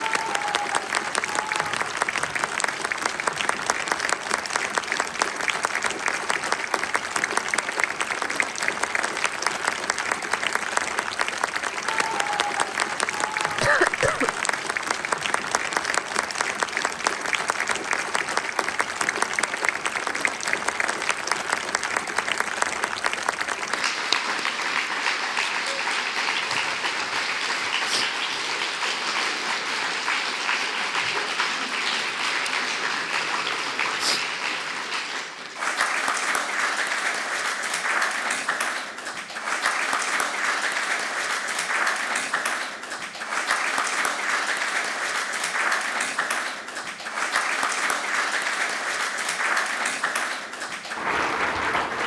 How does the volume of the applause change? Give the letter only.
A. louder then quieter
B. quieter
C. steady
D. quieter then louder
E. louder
C.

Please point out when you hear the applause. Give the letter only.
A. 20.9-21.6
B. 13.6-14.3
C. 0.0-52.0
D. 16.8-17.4
C.